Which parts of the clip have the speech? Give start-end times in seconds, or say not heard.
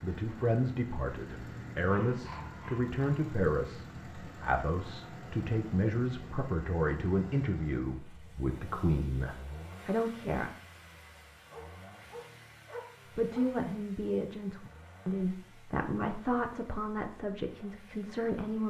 0.0-10.5, 13.2-18.6.